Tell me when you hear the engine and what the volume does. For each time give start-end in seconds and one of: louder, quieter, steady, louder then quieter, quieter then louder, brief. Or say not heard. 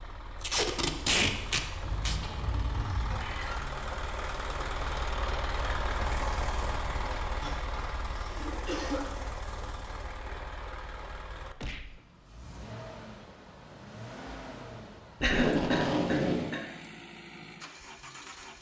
0.0-18.5 louder then quieter.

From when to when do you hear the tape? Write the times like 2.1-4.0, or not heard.
0.4-2.2, 15.2-16.6.